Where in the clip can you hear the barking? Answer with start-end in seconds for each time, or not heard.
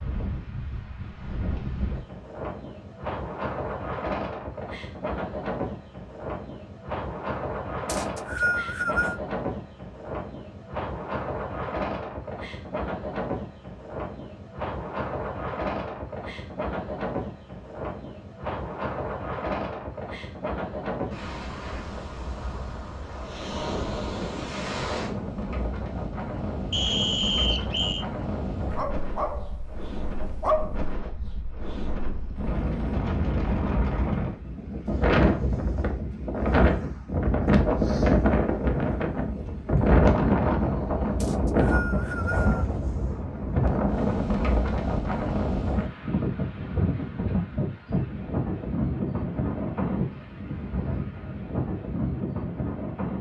28.7-30.9.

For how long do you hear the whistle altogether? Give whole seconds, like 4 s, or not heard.
4 s.